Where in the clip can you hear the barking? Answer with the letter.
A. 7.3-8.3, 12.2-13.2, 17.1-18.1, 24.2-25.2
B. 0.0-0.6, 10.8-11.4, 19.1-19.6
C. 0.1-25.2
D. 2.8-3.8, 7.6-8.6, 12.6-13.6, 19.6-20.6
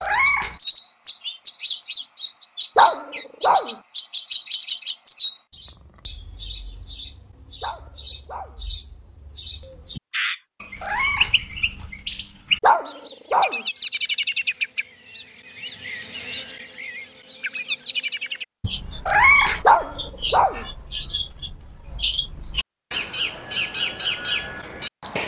D.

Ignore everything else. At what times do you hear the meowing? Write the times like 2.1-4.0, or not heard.
0.0-0.6, 10.8-11.4, 19.1-19.6.